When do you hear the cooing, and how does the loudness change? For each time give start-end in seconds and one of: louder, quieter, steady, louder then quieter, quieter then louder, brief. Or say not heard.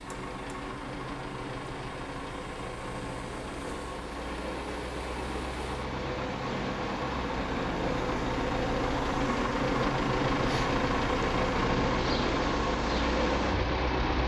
not heard.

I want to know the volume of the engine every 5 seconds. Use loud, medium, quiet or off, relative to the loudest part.
medium, loud, loud.